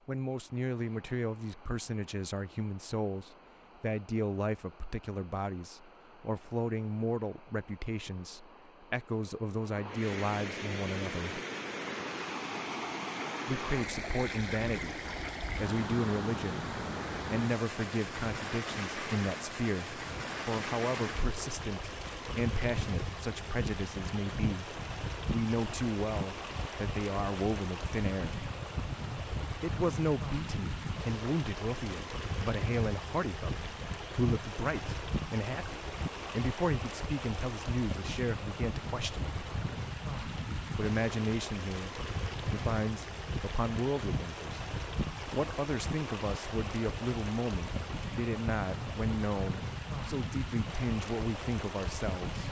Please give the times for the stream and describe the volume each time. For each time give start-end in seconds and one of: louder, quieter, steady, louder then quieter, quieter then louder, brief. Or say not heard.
0.0-52.4 louder.